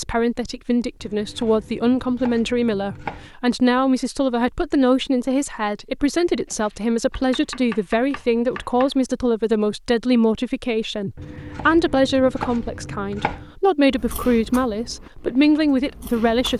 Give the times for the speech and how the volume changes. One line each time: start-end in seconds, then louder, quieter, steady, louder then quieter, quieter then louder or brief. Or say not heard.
0.0-16.5 steady.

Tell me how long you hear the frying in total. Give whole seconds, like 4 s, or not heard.
not heard.